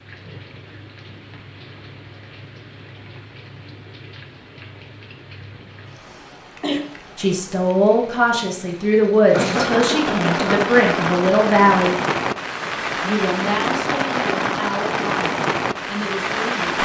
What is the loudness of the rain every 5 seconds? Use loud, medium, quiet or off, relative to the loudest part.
quiet, medium, loud, loud.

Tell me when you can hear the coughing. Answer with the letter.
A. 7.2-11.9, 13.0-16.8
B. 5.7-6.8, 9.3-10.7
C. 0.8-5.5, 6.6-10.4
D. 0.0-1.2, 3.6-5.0
B.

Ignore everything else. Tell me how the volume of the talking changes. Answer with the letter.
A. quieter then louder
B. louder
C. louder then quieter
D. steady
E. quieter
E.